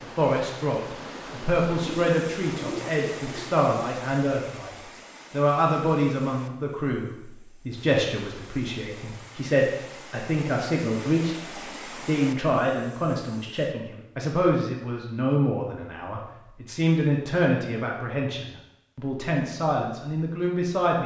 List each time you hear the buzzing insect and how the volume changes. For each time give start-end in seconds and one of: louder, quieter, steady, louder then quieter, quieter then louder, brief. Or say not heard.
not heard.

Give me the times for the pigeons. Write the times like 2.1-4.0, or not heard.
1.8-3.6.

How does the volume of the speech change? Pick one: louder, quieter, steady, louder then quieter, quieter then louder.
steady.